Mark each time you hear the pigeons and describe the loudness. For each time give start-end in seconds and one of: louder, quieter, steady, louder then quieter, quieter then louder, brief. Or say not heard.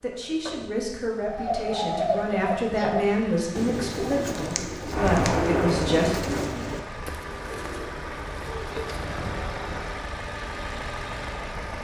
1.2-9.5 quieter.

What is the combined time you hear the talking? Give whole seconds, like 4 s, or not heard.
6 s.